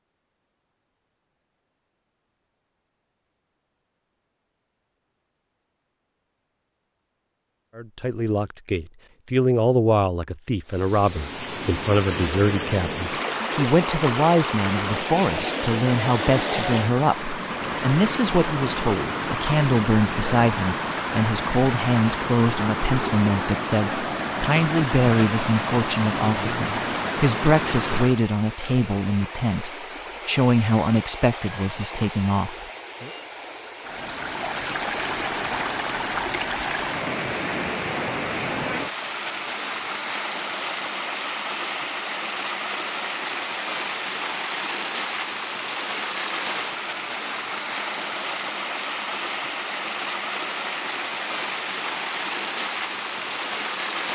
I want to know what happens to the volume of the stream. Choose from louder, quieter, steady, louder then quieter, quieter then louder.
steady.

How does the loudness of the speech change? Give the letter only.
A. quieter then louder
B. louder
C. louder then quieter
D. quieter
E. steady
E.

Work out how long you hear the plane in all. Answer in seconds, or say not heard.
not heard.